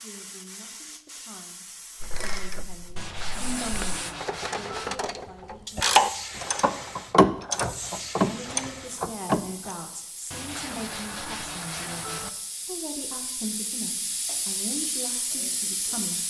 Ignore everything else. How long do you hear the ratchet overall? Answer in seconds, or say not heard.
8 s.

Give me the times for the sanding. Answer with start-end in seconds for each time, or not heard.
3.0-5.0, 10.3-12.3.